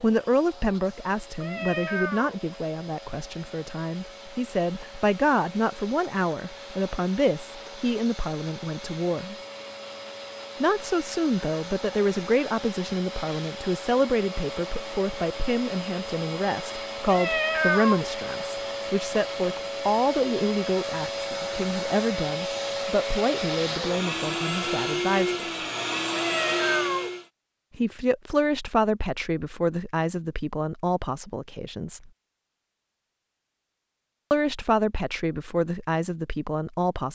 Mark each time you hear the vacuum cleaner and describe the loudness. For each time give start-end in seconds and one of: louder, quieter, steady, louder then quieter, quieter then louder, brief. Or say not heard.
0.0-27.2 louder.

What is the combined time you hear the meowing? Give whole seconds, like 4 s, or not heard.
3 s.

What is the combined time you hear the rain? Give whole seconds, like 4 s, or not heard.
not heard.